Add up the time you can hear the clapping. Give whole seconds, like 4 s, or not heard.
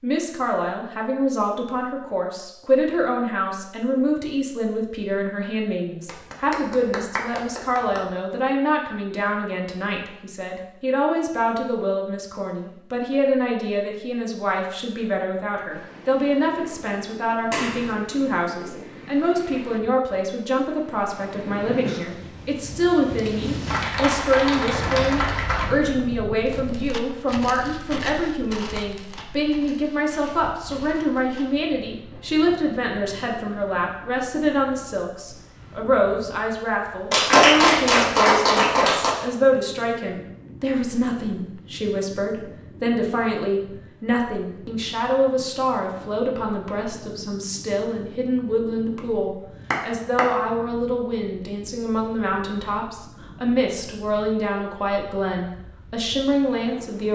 7 s.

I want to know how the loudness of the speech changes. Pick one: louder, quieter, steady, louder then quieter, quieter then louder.
steady.